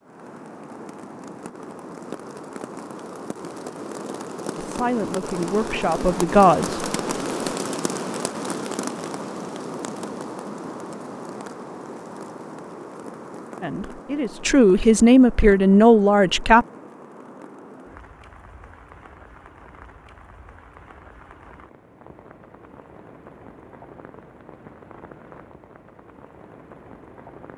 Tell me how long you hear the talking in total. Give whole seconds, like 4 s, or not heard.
5 s.